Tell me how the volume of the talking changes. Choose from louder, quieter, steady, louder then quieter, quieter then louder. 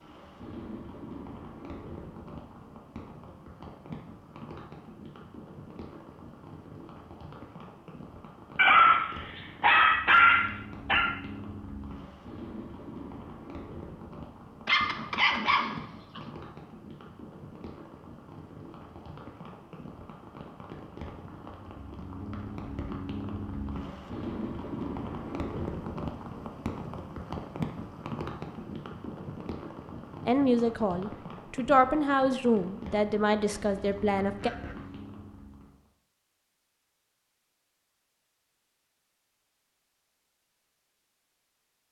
louder then quieter.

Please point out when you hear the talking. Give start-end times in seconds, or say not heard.
30.2-34.5.